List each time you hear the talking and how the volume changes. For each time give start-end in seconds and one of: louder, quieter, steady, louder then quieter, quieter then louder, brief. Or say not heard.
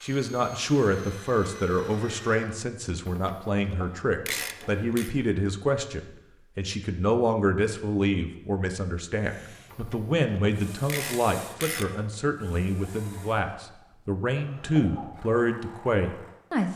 0.0-16.7 steady.